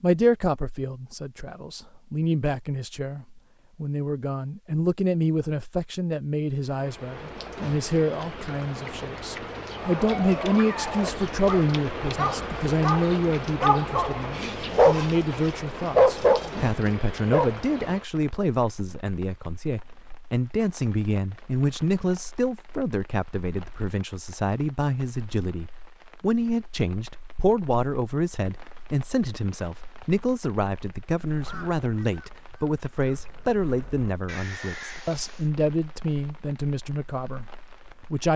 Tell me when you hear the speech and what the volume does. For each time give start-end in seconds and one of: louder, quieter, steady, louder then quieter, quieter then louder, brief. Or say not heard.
0.0-38.3 steady.